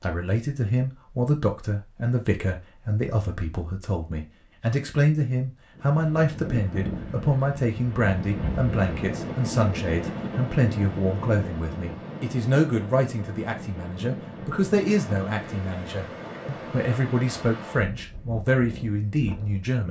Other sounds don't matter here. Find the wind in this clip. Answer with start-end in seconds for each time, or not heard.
5.8-19.7.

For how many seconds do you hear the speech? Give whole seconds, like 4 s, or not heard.
20 s.